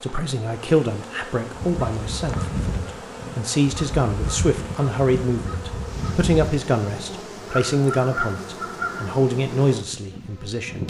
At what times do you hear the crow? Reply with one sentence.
The crow can be heard from 1.5 to 9.1 s.